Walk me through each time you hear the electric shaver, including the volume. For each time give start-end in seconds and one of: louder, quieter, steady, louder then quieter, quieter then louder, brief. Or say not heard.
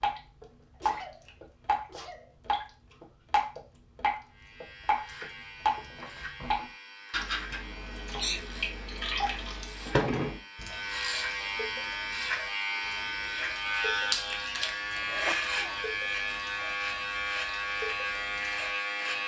4.3-19.2 louder.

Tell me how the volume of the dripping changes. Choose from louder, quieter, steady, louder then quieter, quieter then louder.
quieter.